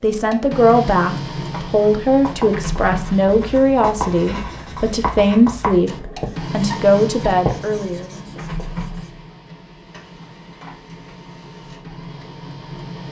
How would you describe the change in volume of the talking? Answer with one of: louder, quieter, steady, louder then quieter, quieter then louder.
steady.